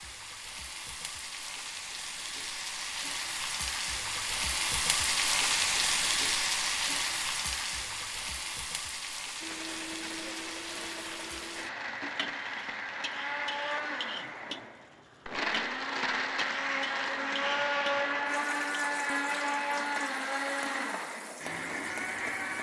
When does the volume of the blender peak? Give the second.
18 s.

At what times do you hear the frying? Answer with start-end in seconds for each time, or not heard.
0.0-22.5.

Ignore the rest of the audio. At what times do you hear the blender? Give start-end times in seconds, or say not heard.
9.4-22.5.